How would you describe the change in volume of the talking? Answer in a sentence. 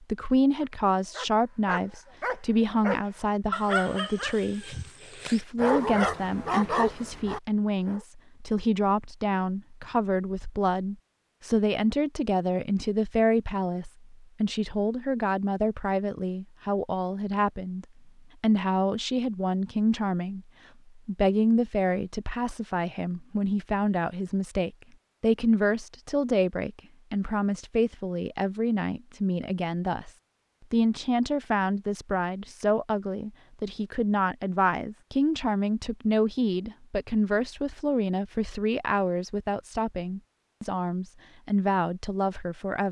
The volume of the talking stays about the same.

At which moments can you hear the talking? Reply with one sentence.
The talking can be heard from 0.0 to 30.1 s and from 30.7 to 42.8 s.